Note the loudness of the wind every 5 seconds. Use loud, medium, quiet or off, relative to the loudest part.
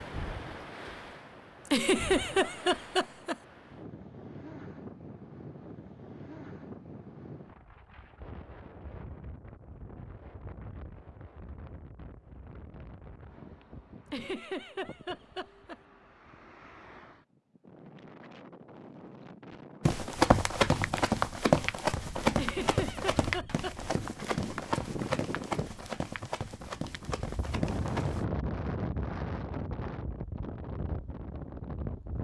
medium, medium, quiet, quiet, medium, loud, loud.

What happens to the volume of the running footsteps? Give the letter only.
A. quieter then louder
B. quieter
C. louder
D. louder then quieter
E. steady
B.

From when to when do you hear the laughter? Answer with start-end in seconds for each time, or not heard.
1.7-3.4, 14.1-15.8, 22.4-23.8.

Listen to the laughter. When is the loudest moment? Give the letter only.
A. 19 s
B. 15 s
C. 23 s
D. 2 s
D.